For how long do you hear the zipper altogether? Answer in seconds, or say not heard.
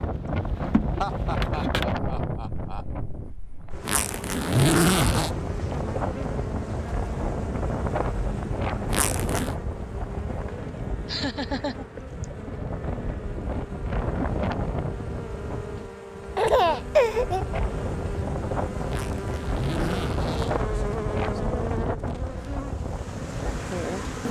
4 s.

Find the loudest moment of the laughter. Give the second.
17 s.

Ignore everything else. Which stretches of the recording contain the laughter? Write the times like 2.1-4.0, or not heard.
1.0-2.9, 11.1-12.2, 16.4-17.4.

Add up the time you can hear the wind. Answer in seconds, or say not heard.
24 s.